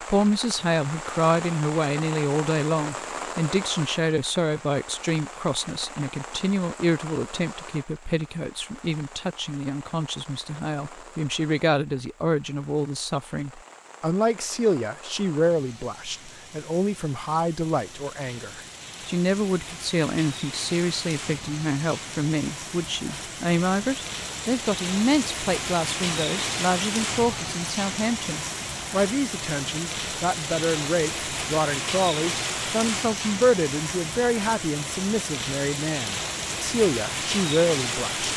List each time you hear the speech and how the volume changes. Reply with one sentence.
You can hear the speech from 0.1 to 38.3 s, at a steady volume.